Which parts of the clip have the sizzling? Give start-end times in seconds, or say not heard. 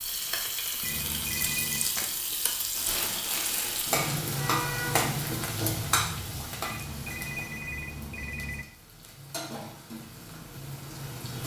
0.0-11.4.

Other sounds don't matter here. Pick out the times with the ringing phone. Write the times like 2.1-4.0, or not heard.
0.8-1.9, 6.6-8.7.